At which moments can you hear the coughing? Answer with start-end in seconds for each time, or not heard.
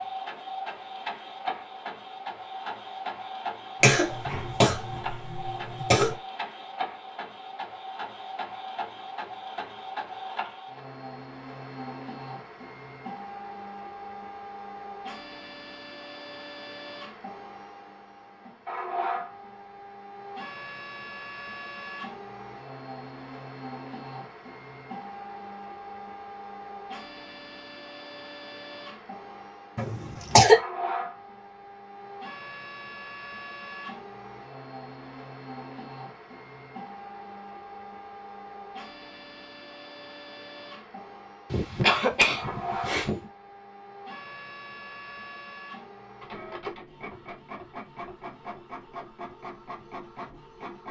3.8-6.2, 29.8-30.6, 41.5-43.1.